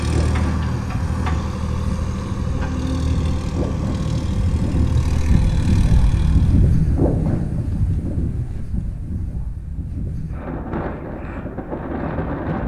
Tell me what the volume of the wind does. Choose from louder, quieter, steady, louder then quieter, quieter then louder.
louder then quieter.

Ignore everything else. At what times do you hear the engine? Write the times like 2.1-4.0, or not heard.
0.0-6.8.